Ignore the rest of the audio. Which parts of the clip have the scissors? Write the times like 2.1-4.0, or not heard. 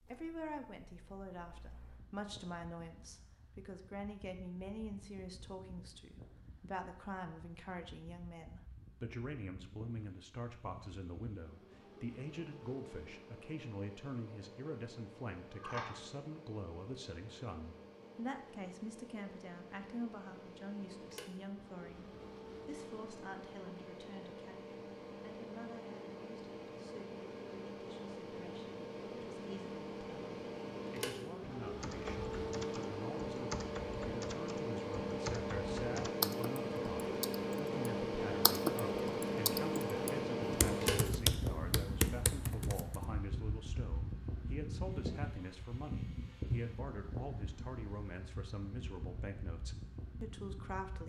15.4-16.0.